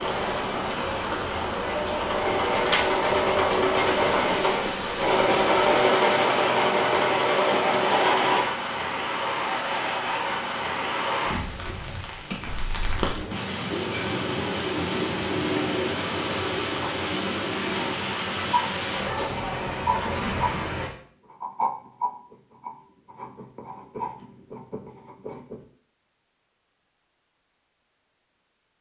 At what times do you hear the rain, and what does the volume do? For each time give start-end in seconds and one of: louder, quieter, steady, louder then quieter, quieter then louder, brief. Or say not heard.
0.0-20.9 steady.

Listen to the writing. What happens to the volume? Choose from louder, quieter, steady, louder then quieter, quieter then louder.
quieter.